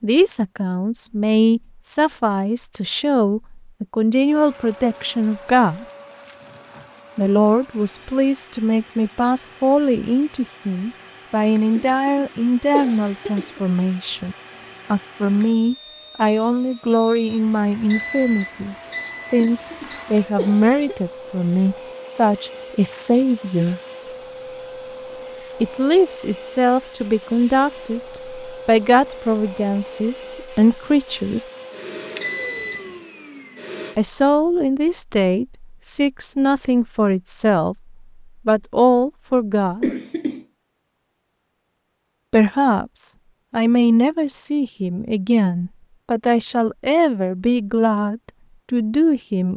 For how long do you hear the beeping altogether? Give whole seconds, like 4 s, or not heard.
3 s.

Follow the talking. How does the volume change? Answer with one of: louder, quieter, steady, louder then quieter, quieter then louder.
steady.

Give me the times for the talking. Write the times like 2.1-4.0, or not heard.
0.0-5.8, 7.2-23.8, 25.6-31.4, 34.0-39.9, 42.3-49.5.